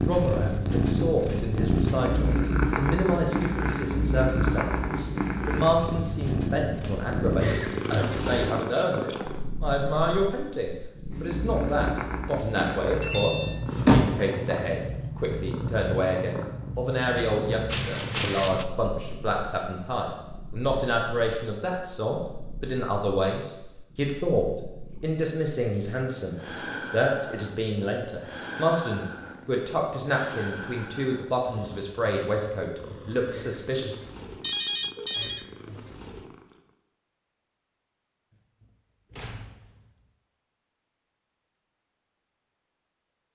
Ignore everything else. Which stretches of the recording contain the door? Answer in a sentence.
The door can be heard from 13.0 to 14.3 s and from 38.6 to 39.9 s.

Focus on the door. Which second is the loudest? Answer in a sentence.
The loudest moment of the door is at 14 seconds.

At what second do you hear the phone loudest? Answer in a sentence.
The volume of the phone peaks at 35 seconds.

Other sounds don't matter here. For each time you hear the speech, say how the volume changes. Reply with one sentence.
The speech can be heard from 0.0 to 33.9 s, at a steady volume.